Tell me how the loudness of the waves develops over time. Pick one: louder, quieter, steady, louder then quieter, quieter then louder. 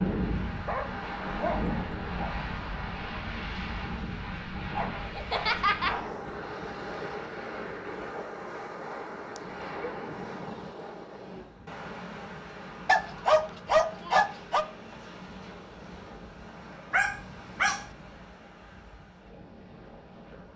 quieter.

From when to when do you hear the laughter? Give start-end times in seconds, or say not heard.
5.1-6.1.